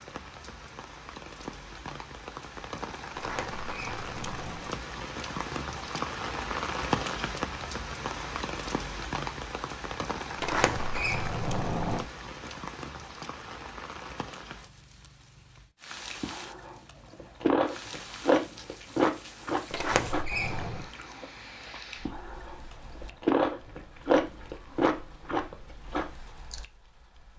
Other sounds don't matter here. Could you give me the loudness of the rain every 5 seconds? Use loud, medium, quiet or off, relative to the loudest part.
medium, loud, medium, quiet, quiet, quiet.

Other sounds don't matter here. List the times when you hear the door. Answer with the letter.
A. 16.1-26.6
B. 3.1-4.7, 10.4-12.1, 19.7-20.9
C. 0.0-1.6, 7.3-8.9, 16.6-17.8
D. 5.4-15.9
B.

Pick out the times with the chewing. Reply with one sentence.
You can hear the chewing from 16.1 to 26.6 s.